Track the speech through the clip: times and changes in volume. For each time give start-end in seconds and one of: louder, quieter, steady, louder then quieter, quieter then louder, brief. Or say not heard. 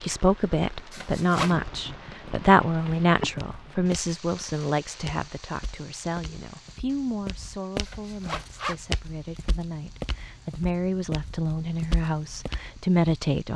0.0-13.5 quieter then louder.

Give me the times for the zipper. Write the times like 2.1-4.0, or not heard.
0.9-1.6, 7.8-8.8.